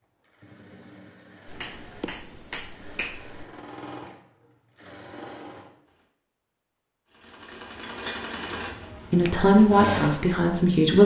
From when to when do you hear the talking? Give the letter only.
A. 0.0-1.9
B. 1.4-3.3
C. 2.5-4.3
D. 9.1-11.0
D.